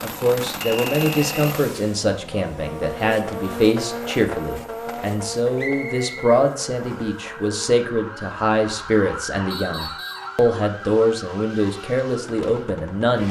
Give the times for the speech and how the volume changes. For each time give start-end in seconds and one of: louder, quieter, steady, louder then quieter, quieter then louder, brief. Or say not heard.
0.0-13.2 steady.